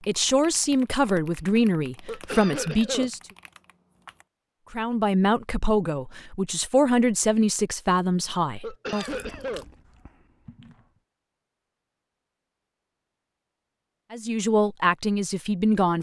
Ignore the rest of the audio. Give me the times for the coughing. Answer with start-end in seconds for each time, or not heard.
2.0-3.1, 8.6-9.7.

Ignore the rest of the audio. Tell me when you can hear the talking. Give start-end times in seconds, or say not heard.
0.1-3.2, 4.7-9.2, 14.1-15.9.